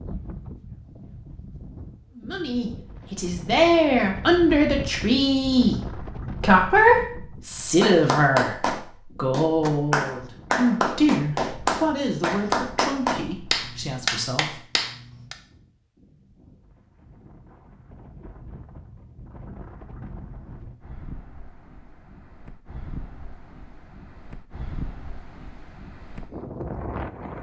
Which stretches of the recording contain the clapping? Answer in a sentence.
The clapping can be heard from 7.8 to 15.3 s.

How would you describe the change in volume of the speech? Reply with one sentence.
The volume of the speech goes down.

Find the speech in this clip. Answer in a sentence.
The speech can be heard from 2.1 to 14.7 s.